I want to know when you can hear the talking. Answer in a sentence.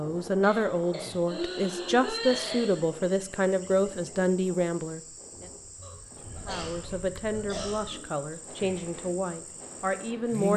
The talking can be heard from 0.0 to 5.0 s and from 6.5 to 10.5 s.